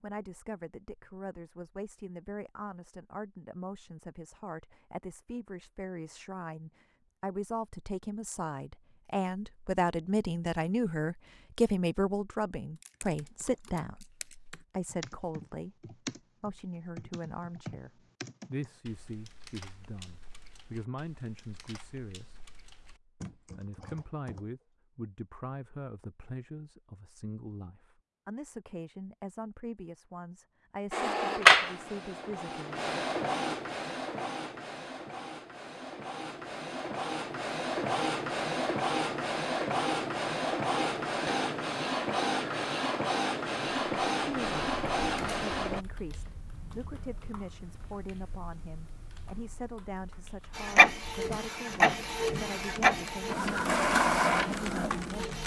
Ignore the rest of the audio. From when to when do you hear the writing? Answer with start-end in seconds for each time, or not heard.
not heard.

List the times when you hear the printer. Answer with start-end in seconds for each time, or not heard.
30.9-45.9, 50.5-55.4.